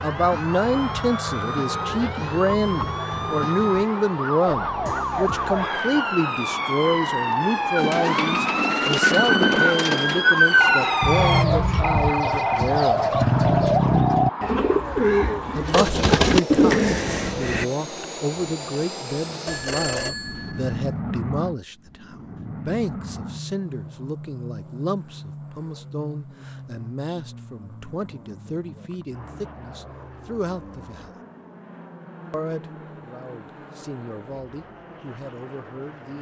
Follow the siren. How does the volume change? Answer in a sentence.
The loudness of the siren goes up.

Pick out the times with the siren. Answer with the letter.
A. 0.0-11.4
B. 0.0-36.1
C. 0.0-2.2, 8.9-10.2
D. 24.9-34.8
A.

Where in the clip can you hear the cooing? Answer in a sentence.
You can hear the cooing from 7.8 to 17.6 s.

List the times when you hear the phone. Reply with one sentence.
The phone can be heard from 10.6 to 12.8 s and from 19.4 to 20.8 s.